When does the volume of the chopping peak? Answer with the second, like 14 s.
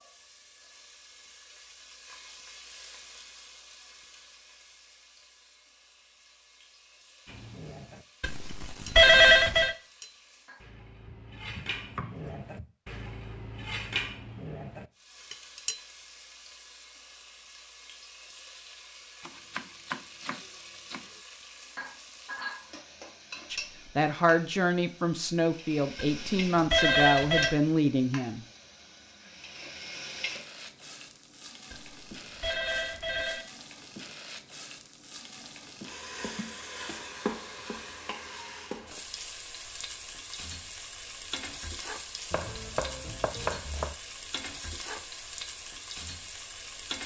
43 s.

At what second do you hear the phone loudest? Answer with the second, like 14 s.
9 s.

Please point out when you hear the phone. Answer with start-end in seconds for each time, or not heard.
8.2-9.8, 26.1-27.6, 31.7-33.5.